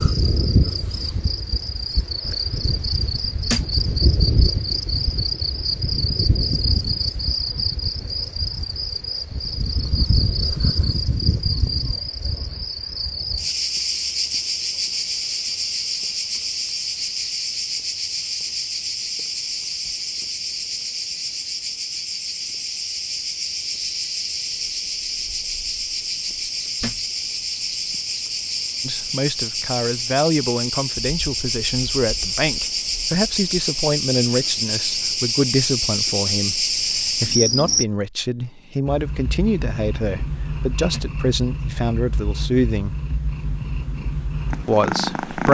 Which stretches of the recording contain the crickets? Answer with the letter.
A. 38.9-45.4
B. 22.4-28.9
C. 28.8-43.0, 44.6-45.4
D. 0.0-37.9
D.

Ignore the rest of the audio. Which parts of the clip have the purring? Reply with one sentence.
The purring can be heard from 38.9 to 45.4 s.